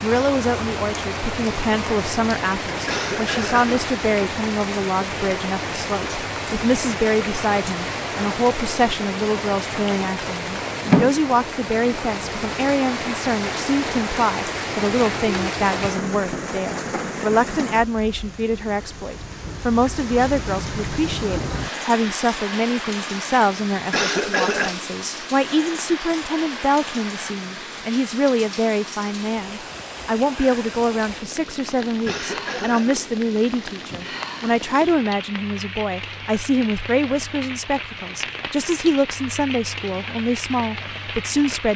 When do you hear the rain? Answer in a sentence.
The rain can be heard from 0.0 to 41.7 s.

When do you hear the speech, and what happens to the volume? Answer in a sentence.
You can hear the speech from 0.0 to 41.7 s, at a steady volume.